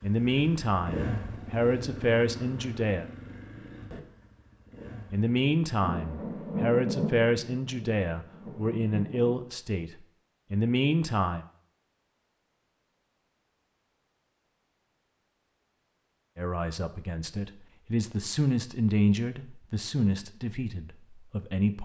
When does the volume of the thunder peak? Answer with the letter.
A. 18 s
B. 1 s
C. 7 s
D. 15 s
C.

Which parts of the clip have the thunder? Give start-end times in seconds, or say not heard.
5.8-9.3.